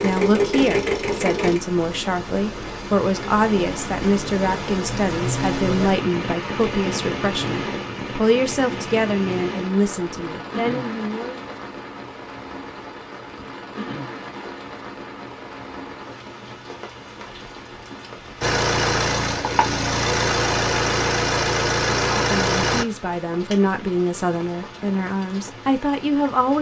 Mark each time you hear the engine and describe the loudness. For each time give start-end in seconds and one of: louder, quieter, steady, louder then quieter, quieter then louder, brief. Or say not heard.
0.0-1.6 brief
18.4-22.9 steady.